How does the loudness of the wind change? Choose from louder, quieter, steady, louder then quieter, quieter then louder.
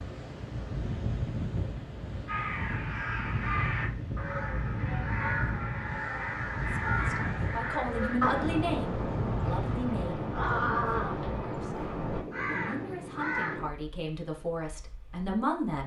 quieter.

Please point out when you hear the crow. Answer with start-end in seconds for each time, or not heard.
2.2-13.8.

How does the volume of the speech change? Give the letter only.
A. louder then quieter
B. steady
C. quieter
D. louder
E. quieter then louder
E.